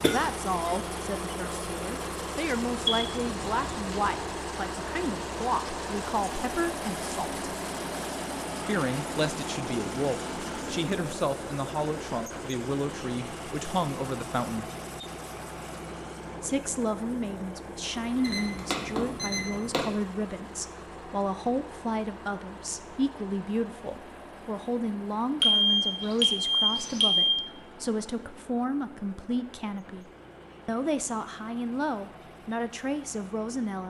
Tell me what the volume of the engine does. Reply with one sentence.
The loudness of the engine goes down.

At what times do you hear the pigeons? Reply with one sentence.
You can't hear the pigeons here.